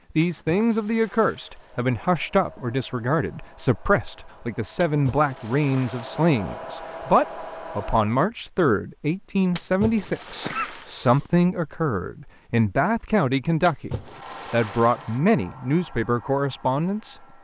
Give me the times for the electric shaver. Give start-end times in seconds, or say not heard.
not heard.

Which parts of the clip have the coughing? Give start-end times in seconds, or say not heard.
10.4-11.2.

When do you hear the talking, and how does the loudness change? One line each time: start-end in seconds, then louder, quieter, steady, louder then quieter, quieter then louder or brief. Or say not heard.
0.1-17.3 steady.